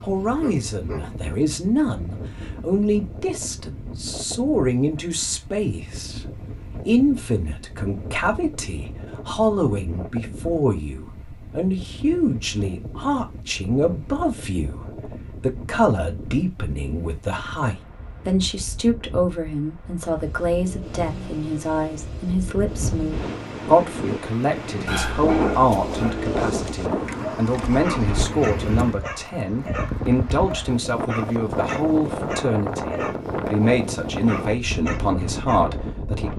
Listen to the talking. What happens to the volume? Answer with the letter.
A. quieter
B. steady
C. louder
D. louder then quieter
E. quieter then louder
B.